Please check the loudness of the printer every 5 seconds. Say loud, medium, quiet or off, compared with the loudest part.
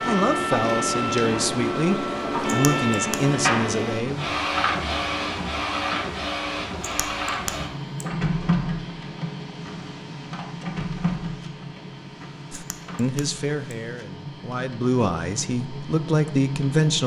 loud, loud, medium, medium.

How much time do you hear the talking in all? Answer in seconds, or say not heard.
9 s.